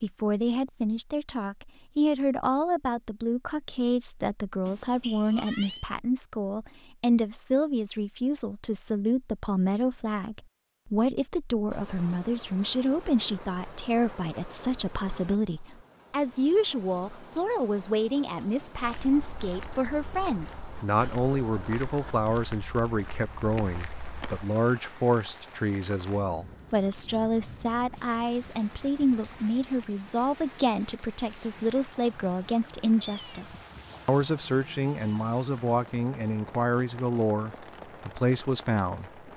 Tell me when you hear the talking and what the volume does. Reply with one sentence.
The talking can be heard from 0.0 to 39.2 s, at a steady volume.